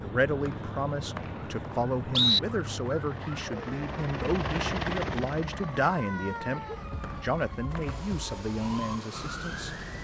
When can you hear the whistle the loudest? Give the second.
2 s.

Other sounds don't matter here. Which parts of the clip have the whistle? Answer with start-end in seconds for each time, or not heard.
0.5-2.4, 7.0-7.8.